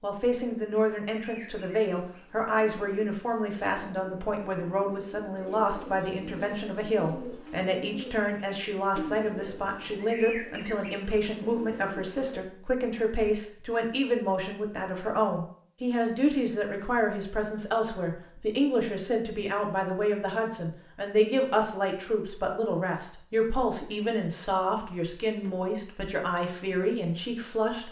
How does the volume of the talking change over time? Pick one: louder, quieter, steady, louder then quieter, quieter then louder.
steady.